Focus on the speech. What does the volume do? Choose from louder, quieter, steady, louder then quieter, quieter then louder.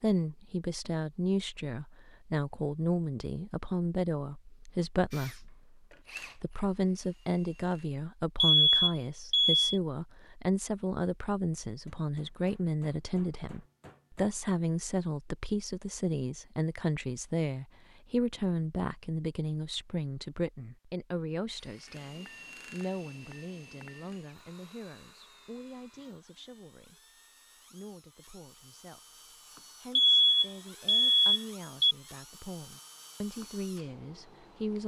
quieter.